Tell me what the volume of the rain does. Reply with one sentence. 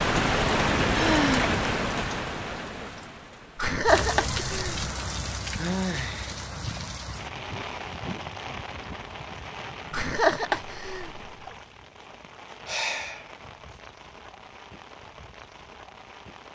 The volume of the rain goes down.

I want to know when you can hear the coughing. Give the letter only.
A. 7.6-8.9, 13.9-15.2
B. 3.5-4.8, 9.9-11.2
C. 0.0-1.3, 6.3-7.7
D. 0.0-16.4
B.